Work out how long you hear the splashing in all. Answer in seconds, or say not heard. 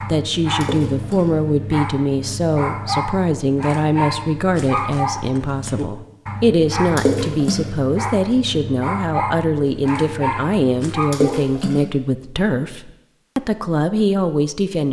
2 s.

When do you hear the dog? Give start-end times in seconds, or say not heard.
0.0-11.4.